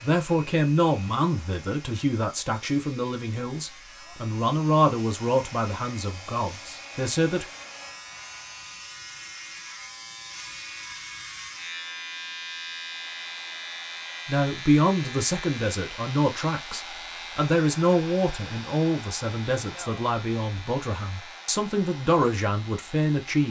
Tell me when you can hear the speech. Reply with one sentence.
The speech can be heard from 0.0 to 7.5 s and from 14.2 to 23.4 s.